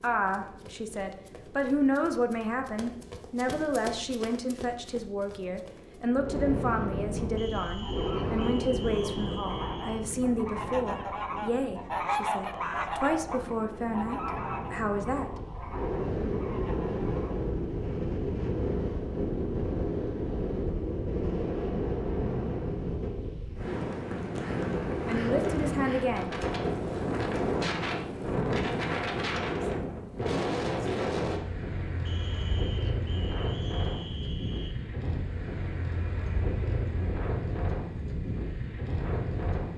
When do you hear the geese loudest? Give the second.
12 s.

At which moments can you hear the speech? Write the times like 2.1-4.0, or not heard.
0.0-15.3, 25.1-26.3.